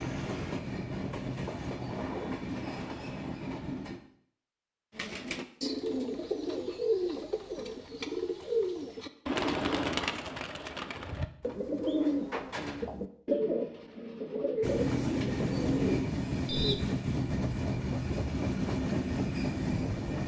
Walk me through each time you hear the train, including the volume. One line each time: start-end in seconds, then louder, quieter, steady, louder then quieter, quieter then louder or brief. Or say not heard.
0.0-4.0 steady
14.6-20.2 steady.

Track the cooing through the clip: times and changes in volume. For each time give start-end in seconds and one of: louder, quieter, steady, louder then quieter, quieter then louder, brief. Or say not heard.
5.0-16.8 steady.